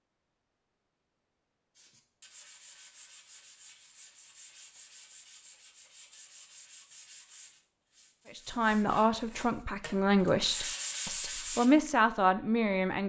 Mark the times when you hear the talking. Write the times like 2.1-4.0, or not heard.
8.3-13.0.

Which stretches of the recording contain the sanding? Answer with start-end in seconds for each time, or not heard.
1.7-11.7.